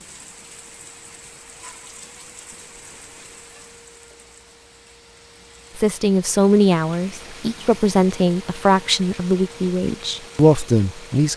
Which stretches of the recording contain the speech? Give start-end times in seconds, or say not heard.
5.8-11.3.